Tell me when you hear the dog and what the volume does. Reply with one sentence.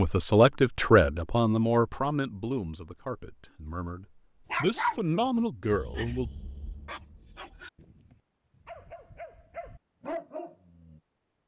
You can hear the dog from 4.5 to 11.0 s, getting quieter then louder.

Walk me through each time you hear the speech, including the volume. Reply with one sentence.
The speech can be heard from 0.0 to 6.3 s, getting quieter then louder.